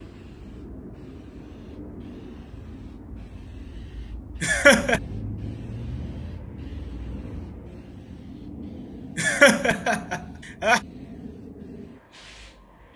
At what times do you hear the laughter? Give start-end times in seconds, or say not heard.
4.4-5.0, 9.2-10.8.